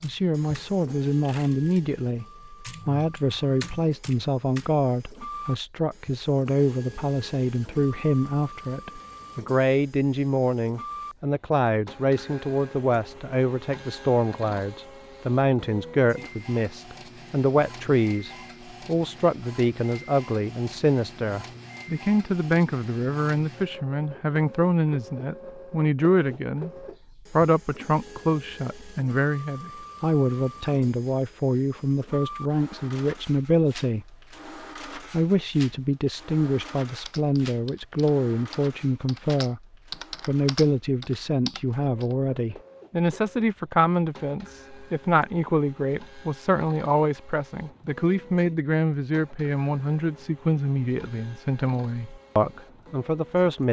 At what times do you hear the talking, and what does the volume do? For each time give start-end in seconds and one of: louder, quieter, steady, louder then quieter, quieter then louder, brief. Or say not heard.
0.0-26.7 steady
27.3-34.1 steady
35.0-39.6 steady
40.2-53.6 steady.